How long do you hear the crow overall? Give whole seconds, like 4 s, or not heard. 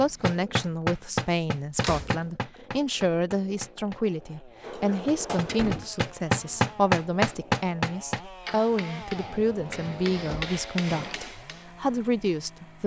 not heard.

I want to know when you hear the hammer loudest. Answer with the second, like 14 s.
7 s.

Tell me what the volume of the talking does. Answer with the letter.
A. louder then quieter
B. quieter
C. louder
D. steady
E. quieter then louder
D.